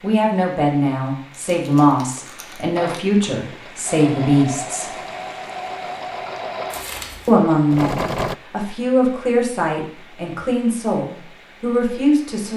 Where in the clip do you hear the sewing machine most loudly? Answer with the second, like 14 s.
8 s.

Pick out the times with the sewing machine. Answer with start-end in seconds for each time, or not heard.
2.8-8.3.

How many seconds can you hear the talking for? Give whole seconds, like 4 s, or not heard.
10 s.